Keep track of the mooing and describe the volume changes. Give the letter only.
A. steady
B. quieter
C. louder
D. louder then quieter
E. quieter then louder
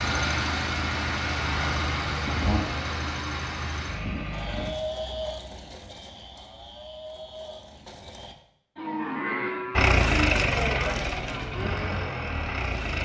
E.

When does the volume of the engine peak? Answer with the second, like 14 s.
10 s.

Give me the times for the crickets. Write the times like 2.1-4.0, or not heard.
not heard.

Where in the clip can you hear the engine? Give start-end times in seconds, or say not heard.
0.0-4.7, 9.8-13.0.